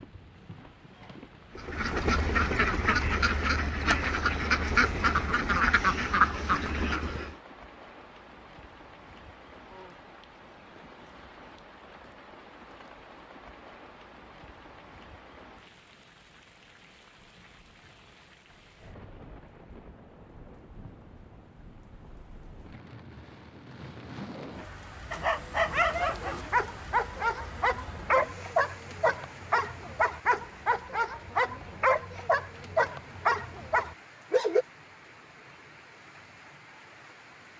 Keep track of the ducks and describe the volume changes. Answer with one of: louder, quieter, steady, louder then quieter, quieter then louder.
steady.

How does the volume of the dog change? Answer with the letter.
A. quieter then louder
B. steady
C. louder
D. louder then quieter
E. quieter
B.